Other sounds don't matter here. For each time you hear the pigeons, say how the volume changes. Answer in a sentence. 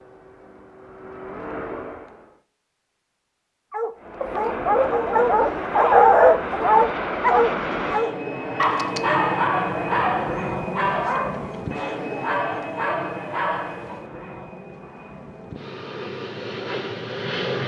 You can't hear the pigeons here.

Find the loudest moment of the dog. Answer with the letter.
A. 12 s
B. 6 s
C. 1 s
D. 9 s
B.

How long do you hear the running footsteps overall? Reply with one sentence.
You can't hear the running footsteps here.